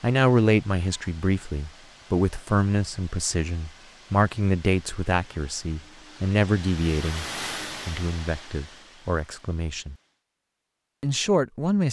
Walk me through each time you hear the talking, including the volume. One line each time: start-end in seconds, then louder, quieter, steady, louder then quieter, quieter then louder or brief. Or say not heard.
0.0-7.2 steady
7.8-9.9 brief
11.0-11.8 brief.